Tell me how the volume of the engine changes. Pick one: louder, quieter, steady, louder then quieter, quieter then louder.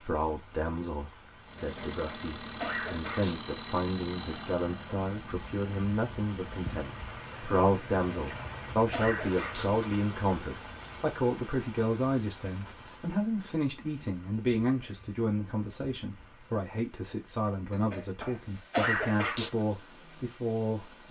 quieter.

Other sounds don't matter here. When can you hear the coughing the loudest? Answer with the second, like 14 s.
19 s.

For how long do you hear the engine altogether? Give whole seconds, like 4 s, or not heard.
6 s.